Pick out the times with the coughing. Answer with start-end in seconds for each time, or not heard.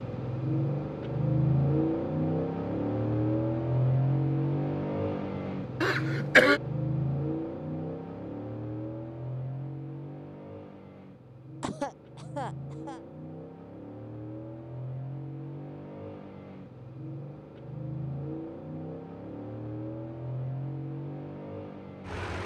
5.8-6.6, 11.6-13.0.